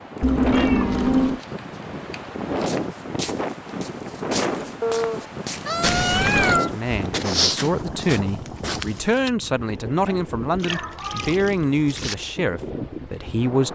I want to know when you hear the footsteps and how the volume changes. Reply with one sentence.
The footsteps can be heard from 2.5 to 9.3 s, getting louder then quieter.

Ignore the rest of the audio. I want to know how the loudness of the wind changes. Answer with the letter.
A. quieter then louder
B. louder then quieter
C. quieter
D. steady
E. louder
C.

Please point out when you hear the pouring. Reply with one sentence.
You can hear the pouring from 0.2 to 1.4 s, from 5.8 to 6.6 s and from 10.6 to 12.2 s.